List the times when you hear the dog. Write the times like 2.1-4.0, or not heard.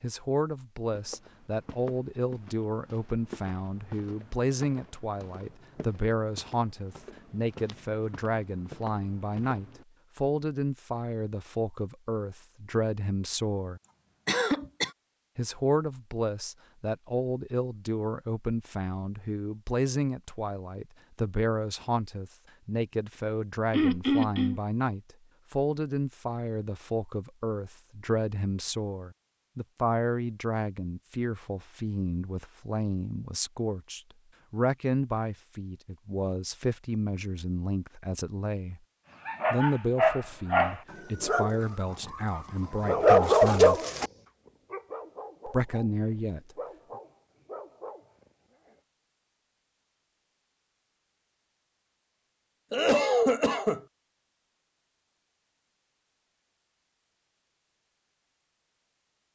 39.2-48.0.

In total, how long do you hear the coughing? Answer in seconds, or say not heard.
3 s.